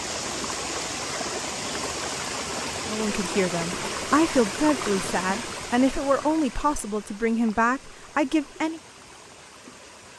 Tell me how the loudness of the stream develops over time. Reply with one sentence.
The loudness of the stream goes down.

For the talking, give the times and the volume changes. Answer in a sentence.
You can hear the talking from 2.9 to 8.8 s, at a steady volume.